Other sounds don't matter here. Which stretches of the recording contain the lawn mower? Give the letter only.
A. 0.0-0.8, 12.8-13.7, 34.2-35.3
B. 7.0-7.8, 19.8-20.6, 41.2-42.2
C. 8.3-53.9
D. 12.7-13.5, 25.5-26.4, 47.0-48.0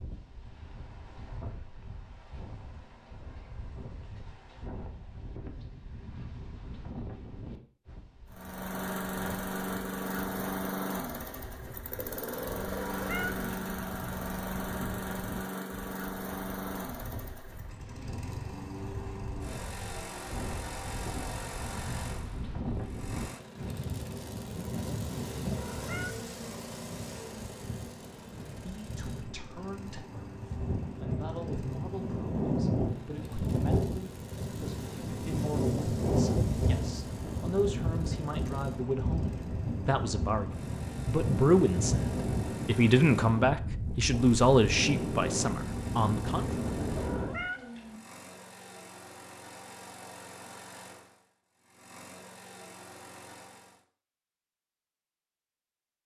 C.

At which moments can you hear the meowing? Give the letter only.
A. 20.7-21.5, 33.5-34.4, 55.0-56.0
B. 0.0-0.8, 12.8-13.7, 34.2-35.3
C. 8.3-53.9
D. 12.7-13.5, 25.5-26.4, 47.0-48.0
D.